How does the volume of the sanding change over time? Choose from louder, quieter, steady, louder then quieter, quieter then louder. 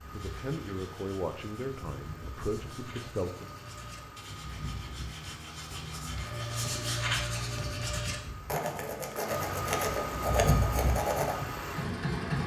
louder.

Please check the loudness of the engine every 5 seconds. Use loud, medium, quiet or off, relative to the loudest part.
quiet, medium, loud.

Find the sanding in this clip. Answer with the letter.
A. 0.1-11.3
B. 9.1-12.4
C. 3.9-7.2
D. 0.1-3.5
A.